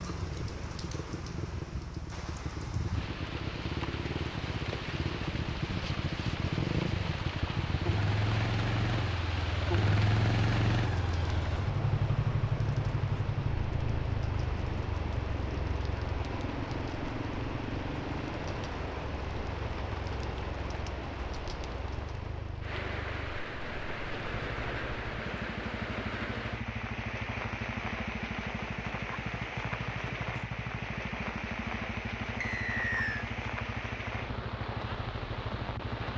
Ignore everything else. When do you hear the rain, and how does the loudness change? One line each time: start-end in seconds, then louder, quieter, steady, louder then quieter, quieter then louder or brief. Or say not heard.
0.0-36.1 steady.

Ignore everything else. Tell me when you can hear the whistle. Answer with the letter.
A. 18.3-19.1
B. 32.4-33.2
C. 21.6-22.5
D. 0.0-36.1
B.